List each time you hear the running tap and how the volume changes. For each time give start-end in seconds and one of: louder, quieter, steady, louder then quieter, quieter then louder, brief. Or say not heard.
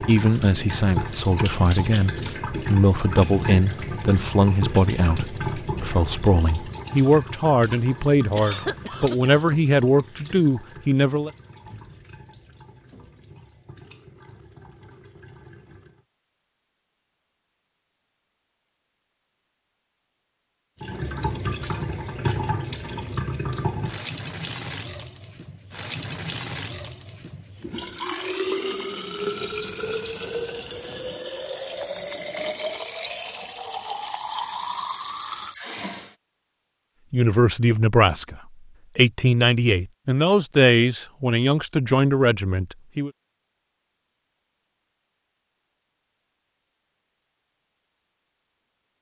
0.0-16.1 quieter
20.8-36.1 steady.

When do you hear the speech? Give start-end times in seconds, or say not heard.
0.0-11.3, 37.1-43.1.